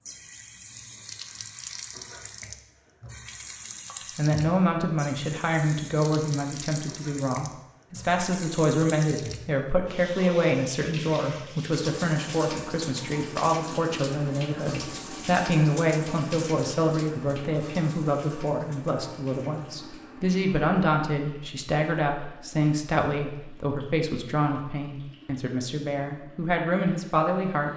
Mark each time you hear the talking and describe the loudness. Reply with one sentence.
The talking can be heard from 4.2 to 27.7 s, at a steady volume.